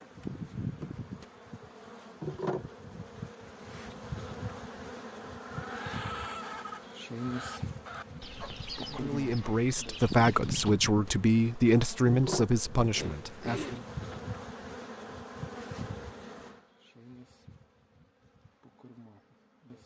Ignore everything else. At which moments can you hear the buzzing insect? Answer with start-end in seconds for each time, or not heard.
0.0-19.8.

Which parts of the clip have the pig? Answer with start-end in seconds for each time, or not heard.
12.9-14.2.